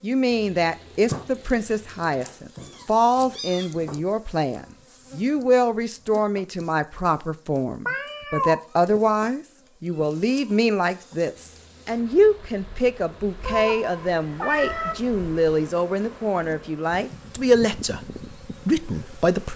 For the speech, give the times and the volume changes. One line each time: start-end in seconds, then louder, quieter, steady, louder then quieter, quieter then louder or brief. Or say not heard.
0.0-19.5 steady.